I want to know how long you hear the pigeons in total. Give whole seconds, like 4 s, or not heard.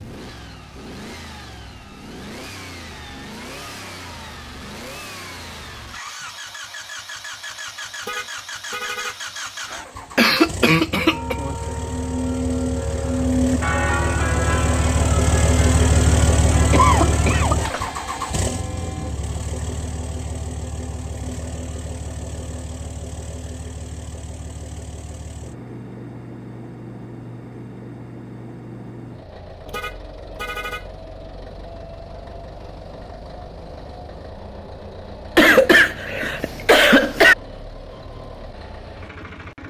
not heard.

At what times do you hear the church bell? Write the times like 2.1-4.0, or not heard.
11.1-19.1.